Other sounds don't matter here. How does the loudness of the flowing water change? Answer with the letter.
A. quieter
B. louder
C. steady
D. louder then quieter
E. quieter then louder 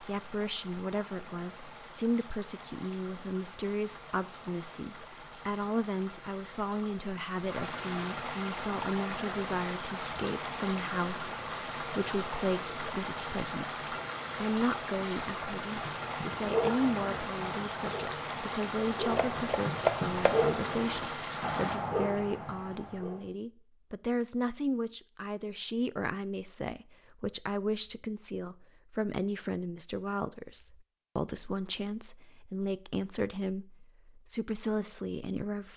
B.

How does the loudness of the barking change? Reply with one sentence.
The volume of the barking goes down, then up.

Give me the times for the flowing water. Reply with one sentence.
You can hear the flowing water from 0.0 to 21.8 s.